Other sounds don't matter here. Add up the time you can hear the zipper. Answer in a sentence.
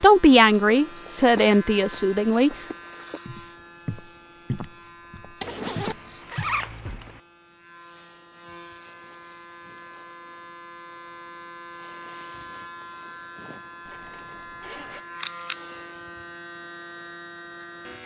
You can hear the zipper for 3 seconds altogether.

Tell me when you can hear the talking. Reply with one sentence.
You can hear the talking from 0.0 to 2.5 s.